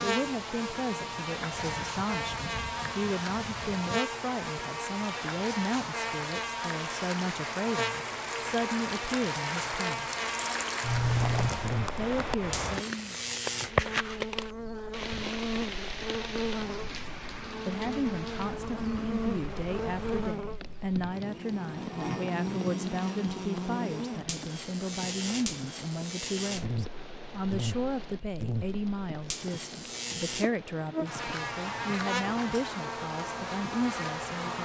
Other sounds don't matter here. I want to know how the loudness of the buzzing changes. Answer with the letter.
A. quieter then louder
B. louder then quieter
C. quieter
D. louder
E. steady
E.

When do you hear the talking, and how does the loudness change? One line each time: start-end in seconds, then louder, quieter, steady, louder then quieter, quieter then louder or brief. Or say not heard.
0.0-10.1 steady
11.9-13.2 brief
17.6-34.5 steady.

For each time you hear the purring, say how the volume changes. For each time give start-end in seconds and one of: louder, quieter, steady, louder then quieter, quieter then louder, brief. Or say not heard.
not heard.